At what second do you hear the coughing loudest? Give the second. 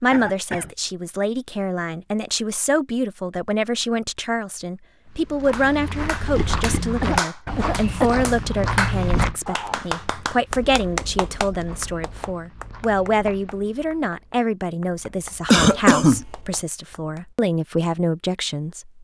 16 s.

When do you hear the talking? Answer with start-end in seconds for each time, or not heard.
0.0-18.9.